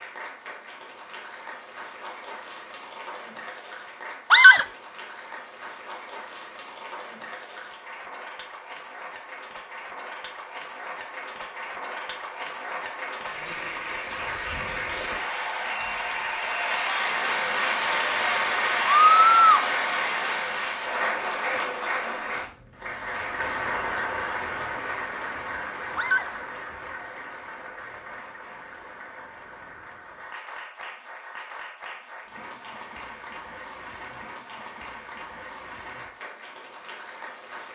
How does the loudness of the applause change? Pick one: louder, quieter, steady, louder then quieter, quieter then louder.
louder then quieter.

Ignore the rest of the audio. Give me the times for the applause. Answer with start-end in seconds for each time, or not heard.
0.0-37.6.